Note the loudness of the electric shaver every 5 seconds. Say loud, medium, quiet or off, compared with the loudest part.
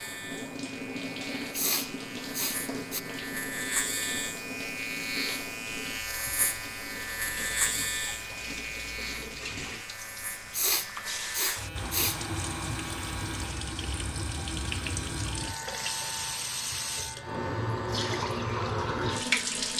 loud, loud, medium, medium.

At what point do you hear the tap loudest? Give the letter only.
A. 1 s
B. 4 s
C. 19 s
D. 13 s
C.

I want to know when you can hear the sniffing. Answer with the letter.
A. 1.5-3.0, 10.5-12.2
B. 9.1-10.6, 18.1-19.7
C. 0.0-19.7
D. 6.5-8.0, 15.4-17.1
A.